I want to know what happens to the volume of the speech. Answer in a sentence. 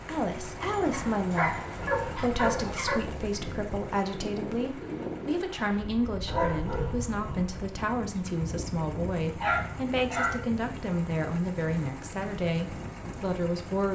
The volume of the speech stays about the same.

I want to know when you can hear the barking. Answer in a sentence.
The barking can be heard from 0.6 to 3.0 s, from 6.2 to 7.4 s and from 9.4 to 10.6 s.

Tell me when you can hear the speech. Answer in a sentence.
The speech can be heard from 0.1 to 13.9 s.